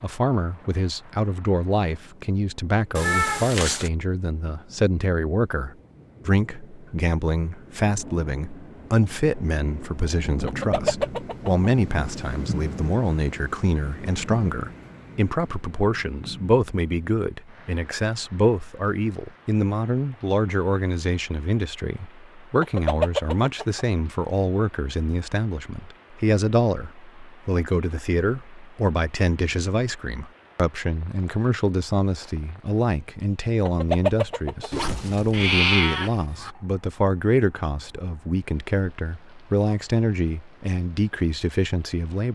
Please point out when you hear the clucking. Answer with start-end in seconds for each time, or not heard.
10.4-11.7, 22.6-23.9, 33.6-34.9.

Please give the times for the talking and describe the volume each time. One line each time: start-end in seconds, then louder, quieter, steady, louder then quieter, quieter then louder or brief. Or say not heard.
0.0-42.2 steady.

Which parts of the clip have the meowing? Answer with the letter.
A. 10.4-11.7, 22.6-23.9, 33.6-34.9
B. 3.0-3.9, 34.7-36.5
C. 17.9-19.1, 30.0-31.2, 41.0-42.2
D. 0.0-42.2
B.